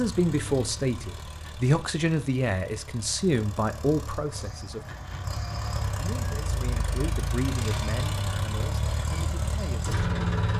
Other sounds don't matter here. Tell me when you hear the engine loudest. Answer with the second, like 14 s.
10 s.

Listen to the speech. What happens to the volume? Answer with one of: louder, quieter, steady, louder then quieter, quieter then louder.
quieter.